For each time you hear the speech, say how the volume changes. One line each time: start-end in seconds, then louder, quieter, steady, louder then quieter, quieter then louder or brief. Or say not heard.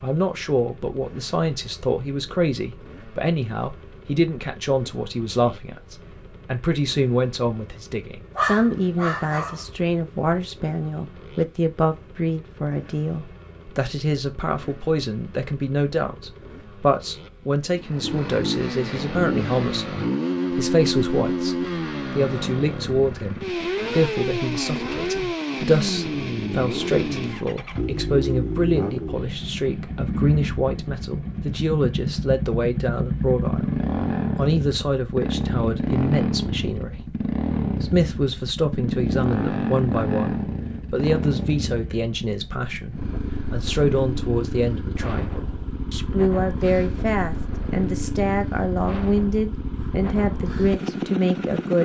0.0-37.0 steady
37.7-51.8 steady.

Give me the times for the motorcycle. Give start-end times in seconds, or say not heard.
0.0-51.8.